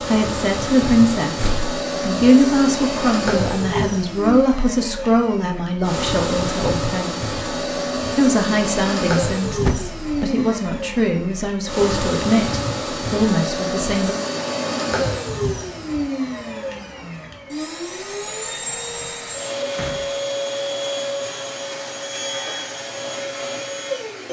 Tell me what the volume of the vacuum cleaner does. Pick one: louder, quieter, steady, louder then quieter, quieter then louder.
steady.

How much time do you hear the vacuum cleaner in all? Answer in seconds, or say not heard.
24 s.